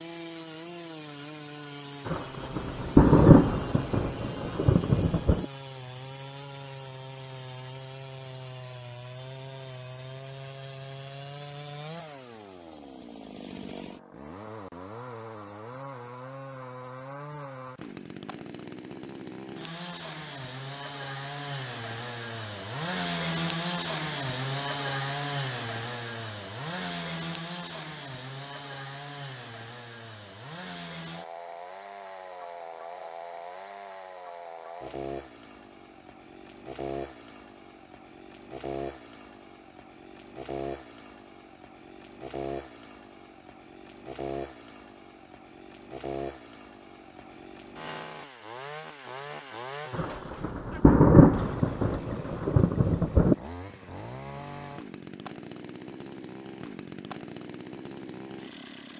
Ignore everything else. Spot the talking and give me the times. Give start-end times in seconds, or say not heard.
not heard.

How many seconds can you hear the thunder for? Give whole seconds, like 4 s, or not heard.
7 s.